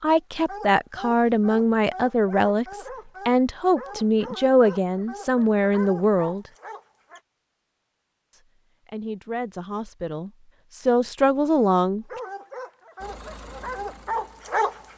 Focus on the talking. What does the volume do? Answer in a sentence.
The loudness of the talking goes down, then up.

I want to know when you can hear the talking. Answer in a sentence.
You can hear the talking from 0.0 to 6.5 s and from 8.3 to 12.1 s.